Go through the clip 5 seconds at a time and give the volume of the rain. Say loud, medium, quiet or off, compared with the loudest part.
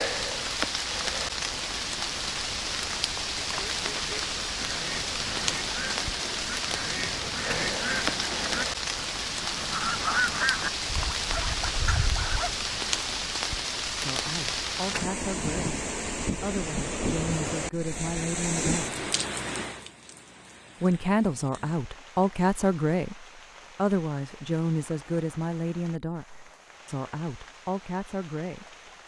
loud, loud, loud, loud, quiet, quiet.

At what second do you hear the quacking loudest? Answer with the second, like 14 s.
10 s.